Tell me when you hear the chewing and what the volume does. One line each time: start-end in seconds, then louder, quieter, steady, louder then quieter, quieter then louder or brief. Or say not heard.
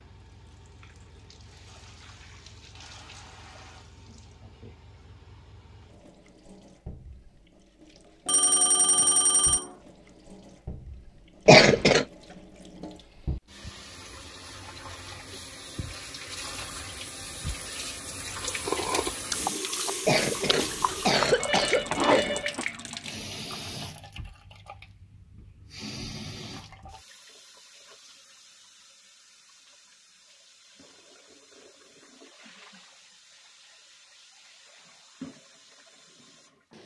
18.4-22.6 quieter then louder.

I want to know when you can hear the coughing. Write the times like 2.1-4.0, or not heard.
11.4-12.1, 20.1-22.4.